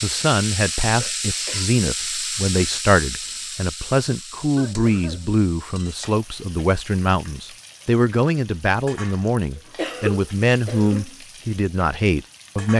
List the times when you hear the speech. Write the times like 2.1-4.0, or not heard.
0.0-12.7.